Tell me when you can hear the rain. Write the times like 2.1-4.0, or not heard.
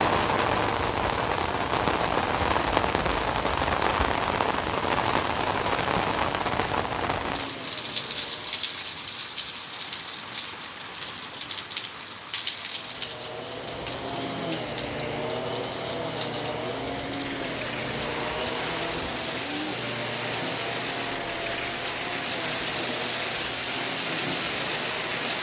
0.0-25.3.